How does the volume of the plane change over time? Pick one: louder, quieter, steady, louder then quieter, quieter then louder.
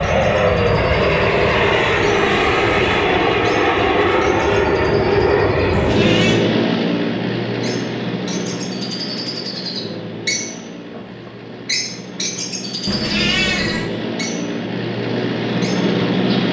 quieter then louder.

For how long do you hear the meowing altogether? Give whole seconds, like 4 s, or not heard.
3 s.